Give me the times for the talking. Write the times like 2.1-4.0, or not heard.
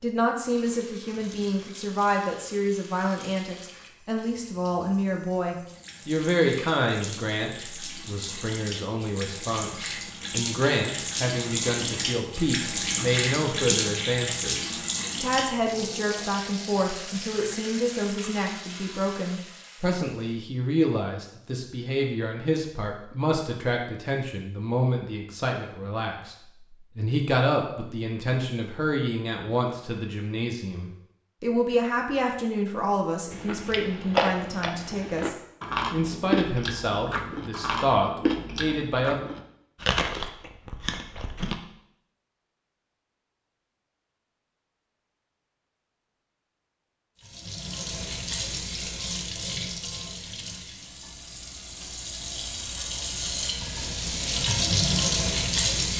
0.0-39.2.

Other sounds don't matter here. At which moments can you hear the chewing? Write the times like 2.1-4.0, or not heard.
33.3-41.6.